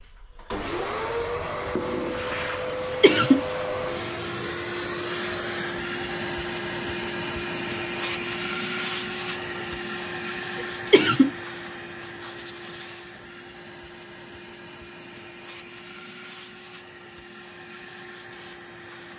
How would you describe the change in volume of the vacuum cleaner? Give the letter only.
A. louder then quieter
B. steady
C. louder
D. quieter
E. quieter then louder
D.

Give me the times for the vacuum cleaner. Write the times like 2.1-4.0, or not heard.
0.0-19.1.